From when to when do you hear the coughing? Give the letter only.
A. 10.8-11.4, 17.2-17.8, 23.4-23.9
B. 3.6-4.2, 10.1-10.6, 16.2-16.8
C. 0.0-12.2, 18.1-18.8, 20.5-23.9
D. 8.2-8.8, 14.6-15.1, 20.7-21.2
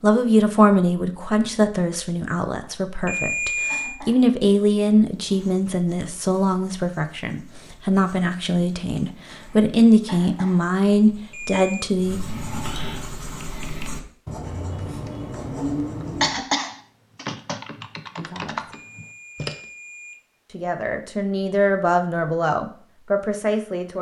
B.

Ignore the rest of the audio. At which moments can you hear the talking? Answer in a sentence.
You can hear the talking from 0.0 to 12.2 s, from 18.1 to 18.8 s and from 20.5 to 23.9 s.